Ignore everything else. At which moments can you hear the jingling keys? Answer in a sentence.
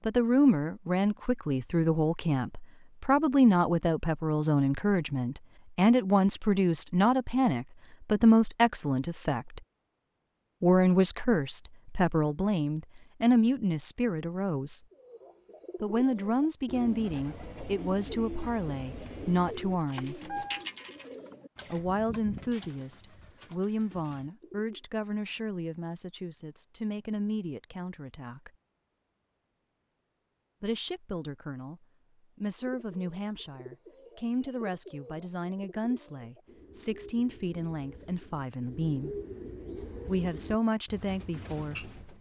The jingling keys can be heard from 18.8 to 20.6 s.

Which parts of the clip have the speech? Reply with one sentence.
You can hear the speech from 0.1 to 9.6 s, from 10.6 to 14.8 s, from 15.8 to 20.4 s, from 21.7 to 28.5 s, from 30.6 to 39.2 s and from 40.0 to 41.9 s.